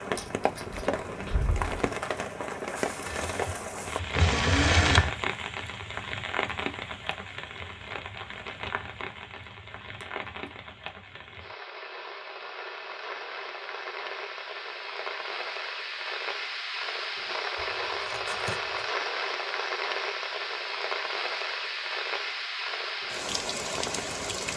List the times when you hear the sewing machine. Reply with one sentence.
The sewing machine can be heard from 3.0 to 5.2 s.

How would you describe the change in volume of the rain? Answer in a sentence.
The loudness of the rain goes down, then up.